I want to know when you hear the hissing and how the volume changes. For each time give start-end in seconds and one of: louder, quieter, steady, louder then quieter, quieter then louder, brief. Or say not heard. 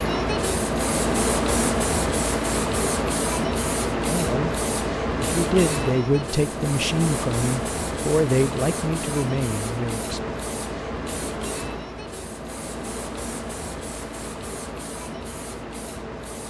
0.0-16.4 quieter.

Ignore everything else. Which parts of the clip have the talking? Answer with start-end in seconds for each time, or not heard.
4.0-4.5, 5.2-10.3.